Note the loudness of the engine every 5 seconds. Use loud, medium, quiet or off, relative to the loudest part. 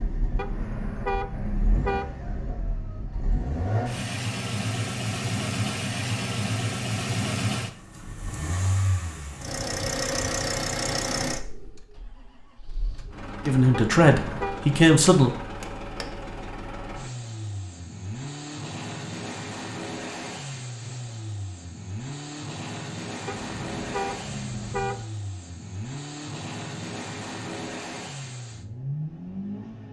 loud, loud, loud, medium, medium, medium.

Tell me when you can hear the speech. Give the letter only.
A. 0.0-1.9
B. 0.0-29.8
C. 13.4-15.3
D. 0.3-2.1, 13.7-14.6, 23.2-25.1
C.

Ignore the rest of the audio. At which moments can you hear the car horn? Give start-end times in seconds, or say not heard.
0.3-2.1, 13.7-14.6, 23.2-25.1.